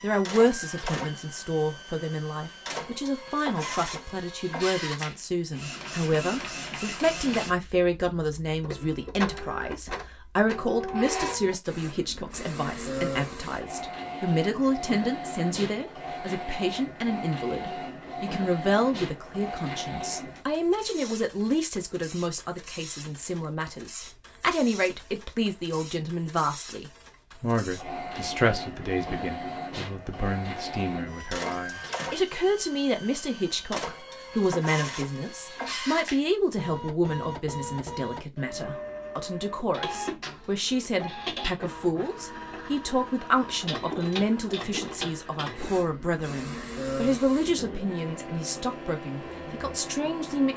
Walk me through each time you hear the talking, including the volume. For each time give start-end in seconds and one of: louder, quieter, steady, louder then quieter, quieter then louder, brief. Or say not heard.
0.0-50.5 steady.